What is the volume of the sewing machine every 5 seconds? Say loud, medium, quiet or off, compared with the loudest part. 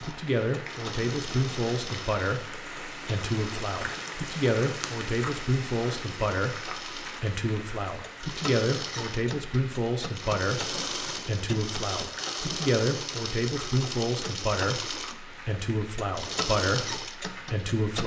medium, medium, loud, loud.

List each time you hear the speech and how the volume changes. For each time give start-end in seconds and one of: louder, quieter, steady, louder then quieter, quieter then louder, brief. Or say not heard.
0.0-18.0 steady.